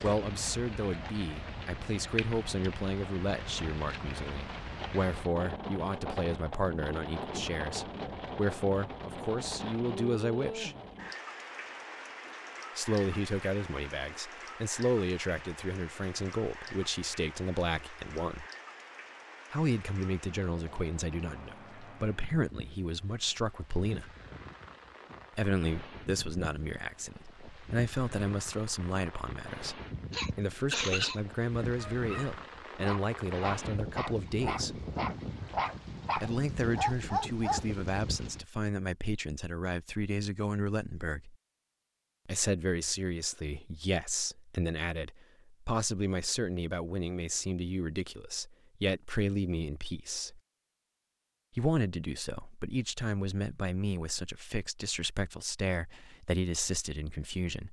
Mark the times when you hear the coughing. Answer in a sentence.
The coughing can be heard from 30.1 to 31.2 s.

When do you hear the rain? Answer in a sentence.
You can hear the rain from 0.0 to 38.5 s.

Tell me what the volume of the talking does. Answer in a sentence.
The volume of the talking stays about the same.